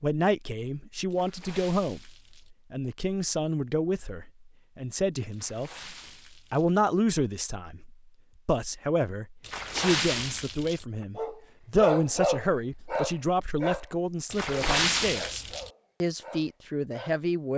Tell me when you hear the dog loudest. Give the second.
12 s.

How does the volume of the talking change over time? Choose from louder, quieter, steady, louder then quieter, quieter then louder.
steady.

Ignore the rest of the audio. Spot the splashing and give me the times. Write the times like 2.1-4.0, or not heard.
1.1-2.5, 5.3-6.7, 9.4-10.8, 14.3-15.7.